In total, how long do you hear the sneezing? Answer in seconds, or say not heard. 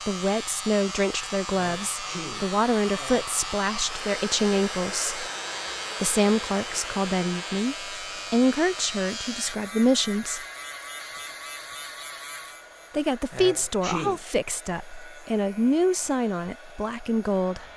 3 s.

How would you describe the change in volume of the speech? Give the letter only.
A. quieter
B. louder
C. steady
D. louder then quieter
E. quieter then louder
C.